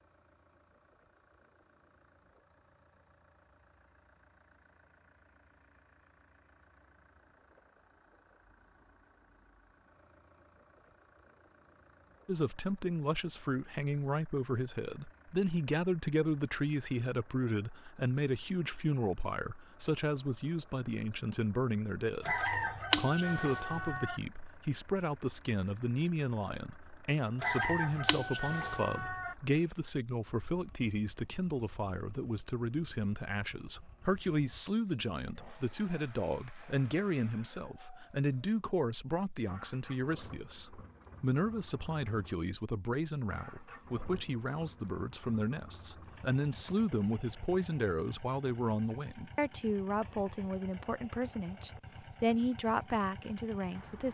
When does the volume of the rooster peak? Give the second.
23 s.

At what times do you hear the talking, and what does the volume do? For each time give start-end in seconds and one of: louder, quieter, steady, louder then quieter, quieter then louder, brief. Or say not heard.
12.2-54.0 steady.